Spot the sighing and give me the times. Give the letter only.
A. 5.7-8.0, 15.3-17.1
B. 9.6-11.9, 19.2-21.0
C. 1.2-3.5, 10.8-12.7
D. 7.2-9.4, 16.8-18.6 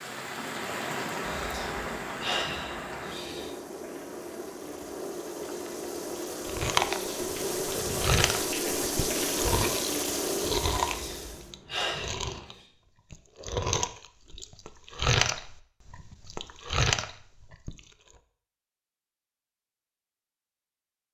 C.